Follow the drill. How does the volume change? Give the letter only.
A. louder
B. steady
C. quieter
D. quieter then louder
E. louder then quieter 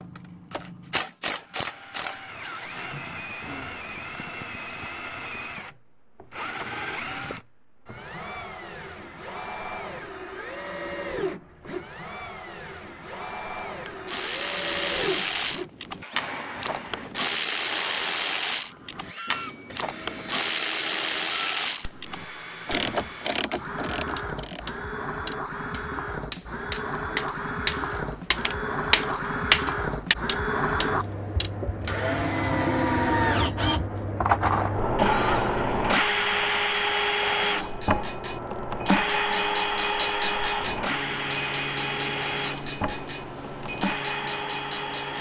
A.